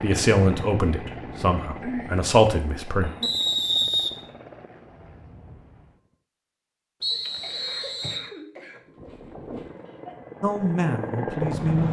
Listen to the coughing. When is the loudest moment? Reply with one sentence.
The volume of the coughing peaks at 2 seconds.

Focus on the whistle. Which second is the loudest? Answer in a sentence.
The loudest moment of the whistle is at 4 seconds.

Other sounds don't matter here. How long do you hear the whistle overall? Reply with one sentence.
The whistle can be heard for 2 seconds in total.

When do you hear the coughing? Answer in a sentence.
The coughing can be heard from 1.8 to 2.2 s, from 3.0 to 3.5 s and from 7.4 to 10.2 s.